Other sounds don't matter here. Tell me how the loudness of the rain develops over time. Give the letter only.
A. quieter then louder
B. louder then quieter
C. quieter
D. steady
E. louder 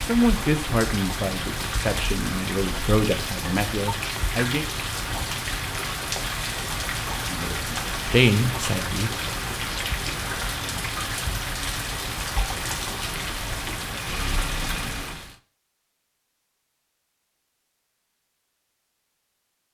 D.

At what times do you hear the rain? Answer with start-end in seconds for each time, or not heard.
0.0-15.3.